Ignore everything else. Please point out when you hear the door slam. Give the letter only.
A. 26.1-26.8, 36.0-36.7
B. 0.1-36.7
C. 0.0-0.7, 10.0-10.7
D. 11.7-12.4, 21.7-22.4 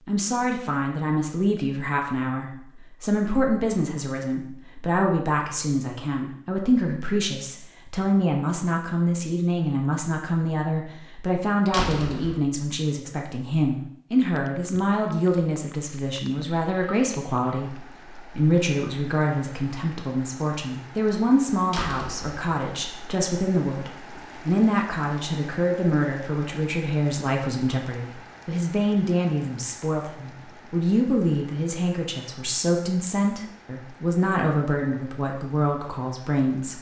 D.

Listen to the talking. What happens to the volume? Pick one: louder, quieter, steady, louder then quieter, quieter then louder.
steady.